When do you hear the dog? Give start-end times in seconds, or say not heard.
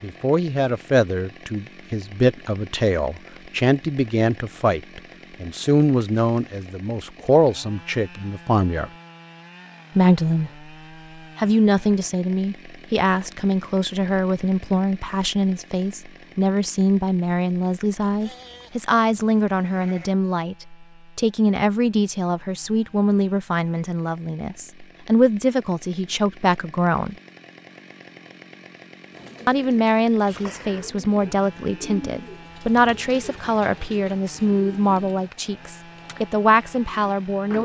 not heard.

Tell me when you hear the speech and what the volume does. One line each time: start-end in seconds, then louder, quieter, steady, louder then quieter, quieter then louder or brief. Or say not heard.
0.0-8.9 steady
9.9-10.5 brief
11.3-27.1 steady
29.4-37.6 steady.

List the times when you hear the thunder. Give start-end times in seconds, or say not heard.
not heard.